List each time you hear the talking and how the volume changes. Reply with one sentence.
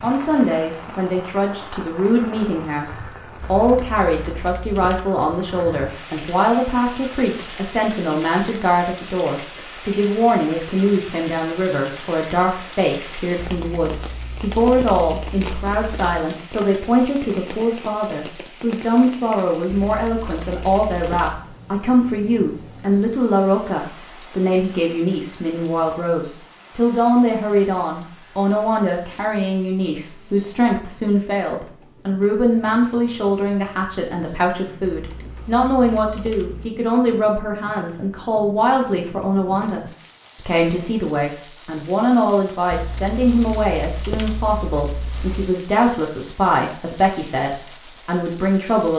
You can hear the talking from 0.0 to 48.9 s, at a steady volume.